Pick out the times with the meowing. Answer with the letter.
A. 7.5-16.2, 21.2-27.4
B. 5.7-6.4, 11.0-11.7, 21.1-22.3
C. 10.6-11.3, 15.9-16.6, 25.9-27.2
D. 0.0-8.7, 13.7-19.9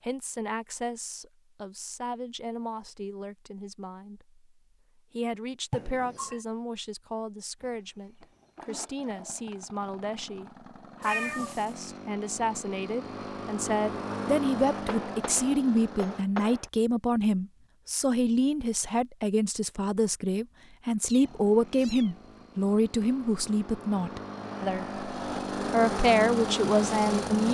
B.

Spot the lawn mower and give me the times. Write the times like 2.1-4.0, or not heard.
7.5-16.2, 21.2-27.4.